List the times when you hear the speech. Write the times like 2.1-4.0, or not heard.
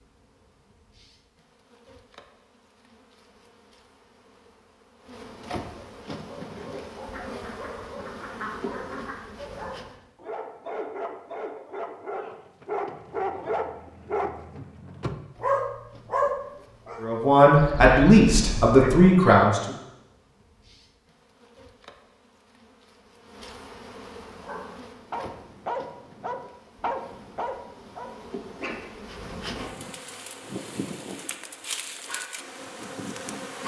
17.0-19.8.